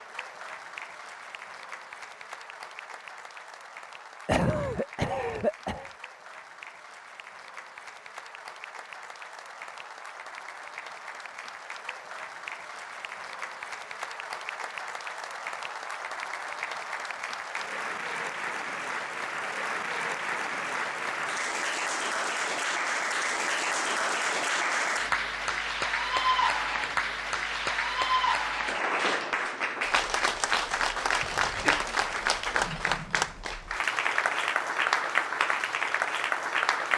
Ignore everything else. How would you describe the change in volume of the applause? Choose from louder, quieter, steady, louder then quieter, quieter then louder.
louder.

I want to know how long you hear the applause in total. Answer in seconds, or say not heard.
37 s.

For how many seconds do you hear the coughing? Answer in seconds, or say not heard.
2 s.